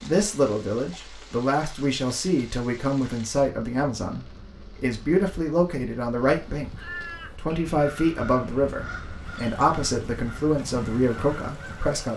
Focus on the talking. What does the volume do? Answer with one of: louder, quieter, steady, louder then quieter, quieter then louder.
steady.